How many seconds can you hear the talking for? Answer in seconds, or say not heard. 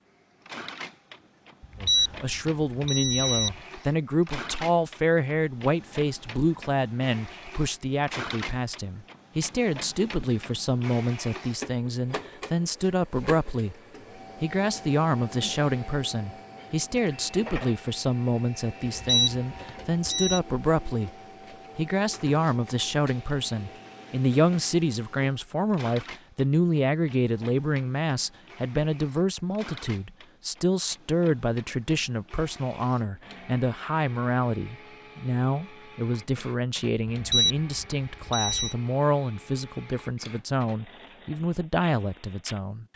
40 s.